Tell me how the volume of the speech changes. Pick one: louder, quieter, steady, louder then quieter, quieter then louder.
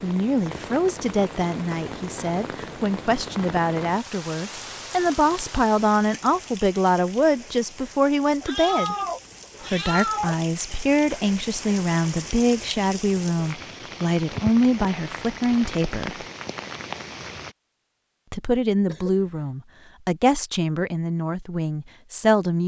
steady.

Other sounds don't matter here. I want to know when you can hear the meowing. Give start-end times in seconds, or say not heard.
8.4-10.3.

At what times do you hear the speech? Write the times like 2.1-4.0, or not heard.
0.0-8.9, 9.7-16.2, 18.3-22.6.